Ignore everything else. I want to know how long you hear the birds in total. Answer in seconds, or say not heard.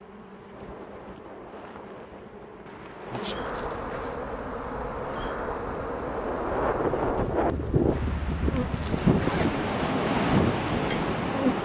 not heard.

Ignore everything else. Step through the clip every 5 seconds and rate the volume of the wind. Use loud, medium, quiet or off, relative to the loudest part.
quiet, loud, loud.